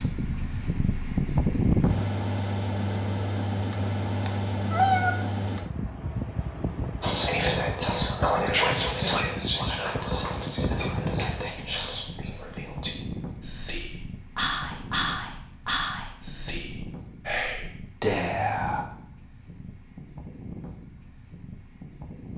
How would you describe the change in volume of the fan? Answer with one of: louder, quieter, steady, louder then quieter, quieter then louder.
quieter.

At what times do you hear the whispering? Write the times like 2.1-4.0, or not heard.
7.0-18.9.